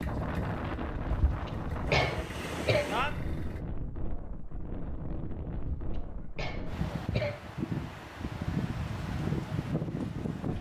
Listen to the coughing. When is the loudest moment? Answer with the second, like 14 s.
2 s.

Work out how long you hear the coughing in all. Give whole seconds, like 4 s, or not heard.
4 s.